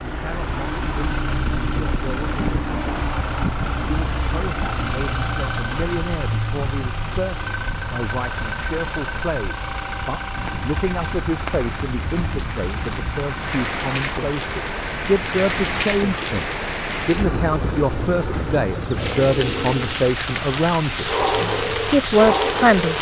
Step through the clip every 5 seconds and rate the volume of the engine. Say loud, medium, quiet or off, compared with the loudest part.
loud, loud, medium, medium, medium.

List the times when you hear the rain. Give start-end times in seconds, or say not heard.
10.3-22.9.